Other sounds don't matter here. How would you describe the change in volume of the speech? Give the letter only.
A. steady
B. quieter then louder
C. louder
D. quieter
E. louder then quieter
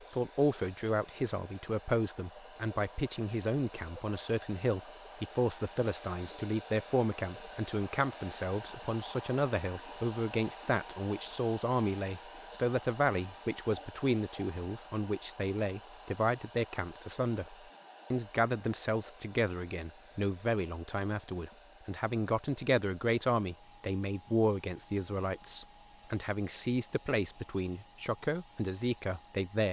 A.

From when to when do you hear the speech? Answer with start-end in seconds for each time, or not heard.
0.1-29.6.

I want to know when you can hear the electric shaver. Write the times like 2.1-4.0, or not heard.
not heard.